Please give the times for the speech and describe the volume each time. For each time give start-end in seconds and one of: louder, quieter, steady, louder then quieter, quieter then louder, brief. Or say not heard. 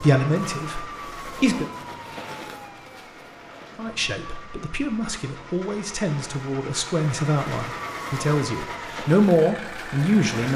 0.0-1.6 brief
3.8-10.5 louder.